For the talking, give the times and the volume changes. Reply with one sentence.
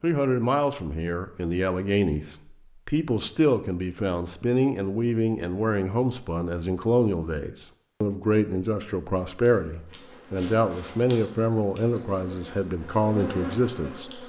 You can hear the talking from 0.0 to 14.2 s, at a steady volume.